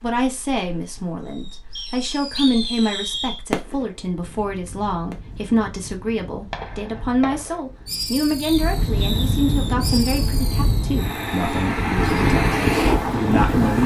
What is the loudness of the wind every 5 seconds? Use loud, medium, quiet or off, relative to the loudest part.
quiet, medium, loud.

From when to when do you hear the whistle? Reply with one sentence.
You can hear the whistle from 1.8 to 3.4 s and from 8.4 to 9.2 s.